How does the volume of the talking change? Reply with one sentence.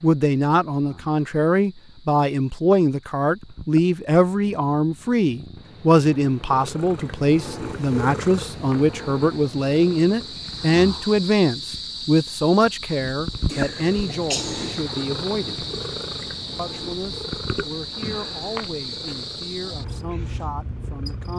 The volume of the talking goes down.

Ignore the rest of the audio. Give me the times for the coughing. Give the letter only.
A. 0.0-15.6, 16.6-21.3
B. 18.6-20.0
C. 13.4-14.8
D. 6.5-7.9
C.